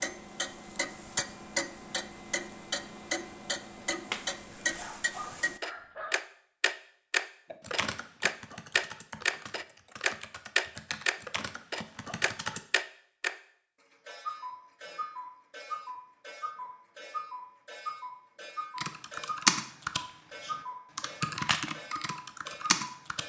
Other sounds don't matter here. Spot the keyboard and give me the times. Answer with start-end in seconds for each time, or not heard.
7.5-12.6, 18.8-23.2.